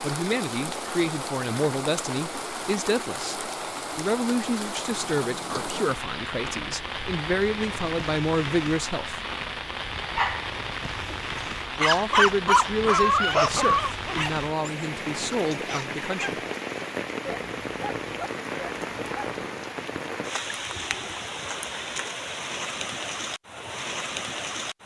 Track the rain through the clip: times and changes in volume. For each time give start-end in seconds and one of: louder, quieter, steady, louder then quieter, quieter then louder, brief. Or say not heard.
0.0-24.8 steady.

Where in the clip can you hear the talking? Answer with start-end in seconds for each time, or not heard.
0.0-9.2, 11.8-16.4.